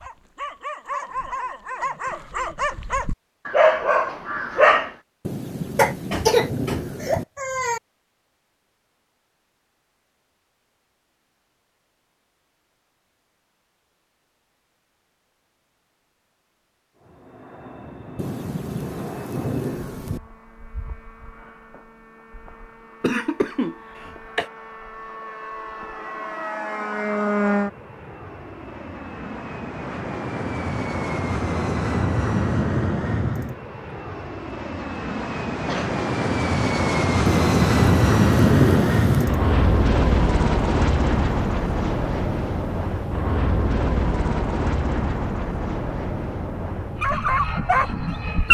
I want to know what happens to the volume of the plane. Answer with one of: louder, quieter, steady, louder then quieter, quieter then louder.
louder then quieter.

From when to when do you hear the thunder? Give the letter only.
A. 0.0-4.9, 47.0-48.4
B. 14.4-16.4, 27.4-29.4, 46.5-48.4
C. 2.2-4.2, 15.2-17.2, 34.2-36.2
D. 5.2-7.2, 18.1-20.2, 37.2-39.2
D.